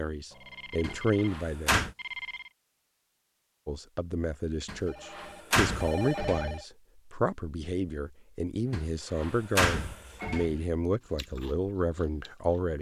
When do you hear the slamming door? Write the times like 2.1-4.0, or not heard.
0.8-1.9, 4.7-6.5, 8.7-10.6.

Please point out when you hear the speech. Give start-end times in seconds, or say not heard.
0.0-1.9, 3.6-12.7.